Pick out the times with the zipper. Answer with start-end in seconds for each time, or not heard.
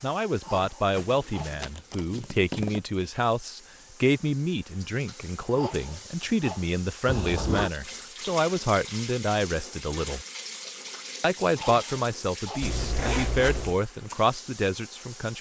0.9-2.8, 7.0-7.7, 12.6-13.8.